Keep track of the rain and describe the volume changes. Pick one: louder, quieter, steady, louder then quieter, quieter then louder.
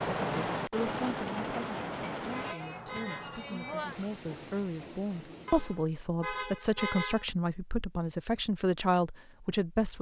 quieter.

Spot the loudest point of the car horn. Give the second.
7 s.